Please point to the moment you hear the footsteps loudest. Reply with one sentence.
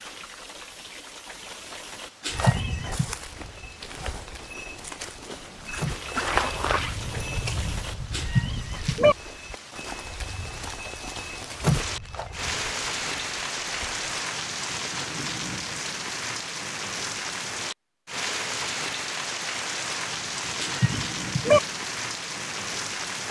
The volume of the footsteps peaks at 6 seconds.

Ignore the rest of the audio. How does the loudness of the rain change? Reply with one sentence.
The volume of the rain goes up.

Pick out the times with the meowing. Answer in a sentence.
You can hear the meowing from 2.2 to 3.0 s, from 8.1 to 9.2 s and from 20.6 to 21.6 s.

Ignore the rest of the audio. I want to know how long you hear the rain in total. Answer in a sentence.
You can hear the rain for 23 seconds altogether.